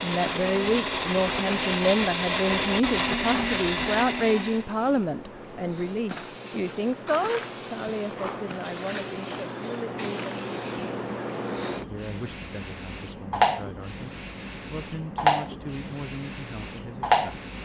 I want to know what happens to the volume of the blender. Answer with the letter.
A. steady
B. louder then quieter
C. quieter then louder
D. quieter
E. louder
A.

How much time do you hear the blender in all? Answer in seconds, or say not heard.
5 s.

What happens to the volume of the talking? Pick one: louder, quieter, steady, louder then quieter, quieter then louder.
quieter.